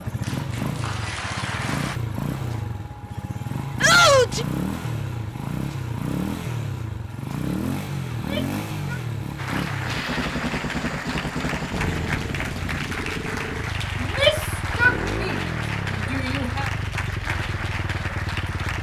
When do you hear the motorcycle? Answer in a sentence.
You can hear the motorcycle from 0.0 to 18.7 s.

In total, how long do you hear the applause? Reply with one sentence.
You can hear the applause for 11 seconds altogether.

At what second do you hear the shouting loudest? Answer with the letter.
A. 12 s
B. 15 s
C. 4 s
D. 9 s
C.